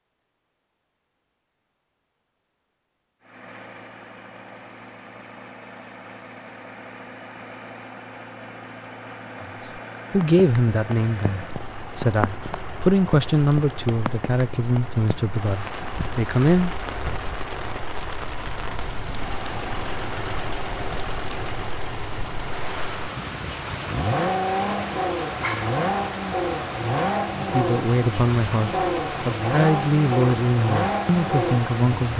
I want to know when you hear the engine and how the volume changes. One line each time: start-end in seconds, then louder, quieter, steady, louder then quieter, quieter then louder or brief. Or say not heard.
3.2-32.1 louder.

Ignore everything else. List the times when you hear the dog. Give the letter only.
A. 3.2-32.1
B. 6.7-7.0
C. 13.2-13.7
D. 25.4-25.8
D.